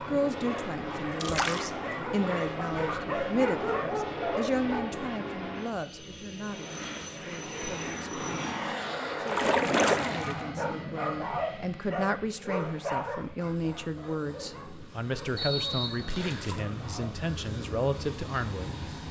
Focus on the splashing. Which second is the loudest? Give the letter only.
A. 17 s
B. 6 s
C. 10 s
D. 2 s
C.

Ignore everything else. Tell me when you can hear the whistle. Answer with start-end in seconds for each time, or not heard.
15.3-16.5.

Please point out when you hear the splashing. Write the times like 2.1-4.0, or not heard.
1.2-1.7, 9.2-10.4, 16.1-16.6.